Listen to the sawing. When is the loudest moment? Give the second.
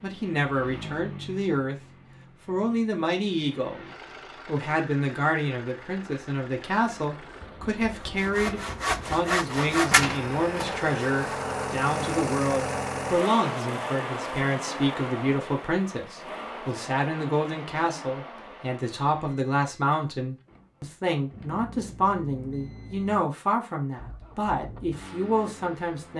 10 s.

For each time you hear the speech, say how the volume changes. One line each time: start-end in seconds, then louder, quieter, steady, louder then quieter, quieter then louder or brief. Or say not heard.
0.0-1.8 brief
2.5-3.9 brief
4.5-26.1 steady.